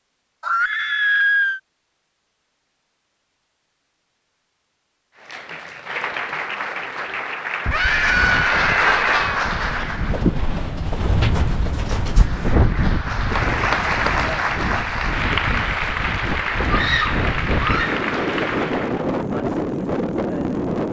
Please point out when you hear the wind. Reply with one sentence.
You can hear the wind from 7.7 to 20.8 s.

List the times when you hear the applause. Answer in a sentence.
You can hear the applause from 5.2 to 10.3 s and from 12.1 to 19.1 s.